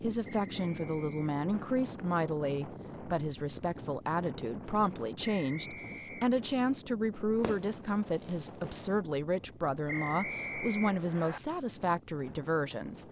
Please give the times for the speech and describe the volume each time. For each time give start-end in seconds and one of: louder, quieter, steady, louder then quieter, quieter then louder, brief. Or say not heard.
0.0-13.0 steady.